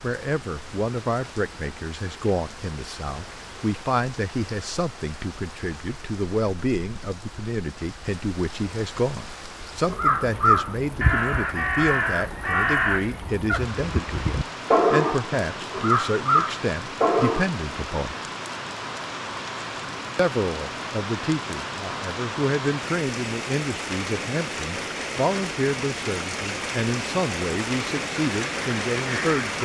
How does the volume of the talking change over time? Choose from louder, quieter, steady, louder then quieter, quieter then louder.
steady.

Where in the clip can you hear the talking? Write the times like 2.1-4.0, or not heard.
0.0-18.1, 20.1-29.6.